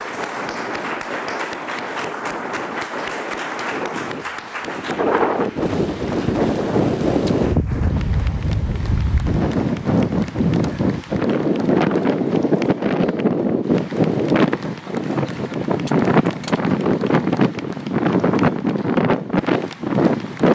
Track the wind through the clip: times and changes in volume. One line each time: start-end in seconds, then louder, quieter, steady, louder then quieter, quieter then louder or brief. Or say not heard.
0.0-20.4 louder.